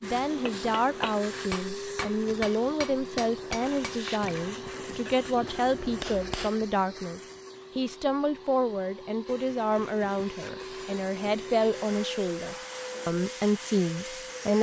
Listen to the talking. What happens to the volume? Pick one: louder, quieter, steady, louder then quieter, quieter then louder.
steady.